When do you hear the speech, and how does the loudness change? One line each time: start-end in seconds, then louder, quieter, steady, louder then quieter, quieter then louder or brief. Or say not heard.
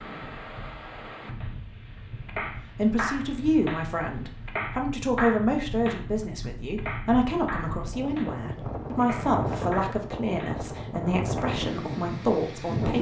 2.8-12.9 steady.